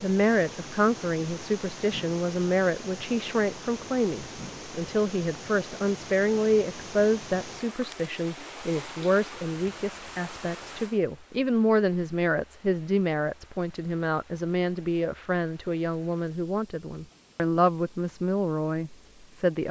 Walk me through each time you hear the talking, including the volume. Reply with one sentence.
The talking can be heard from 0.0 to 19.6 s, at a steady volume.